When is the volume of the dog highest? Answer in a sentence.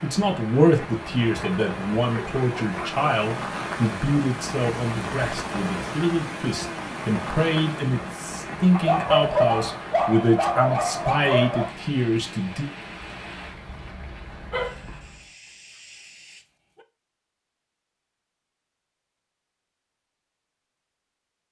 The loudest moment of the dog is at 9 seconds.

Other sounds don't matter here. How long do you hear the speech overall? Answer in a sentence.
You can hear the speech for 13 seconds altogether.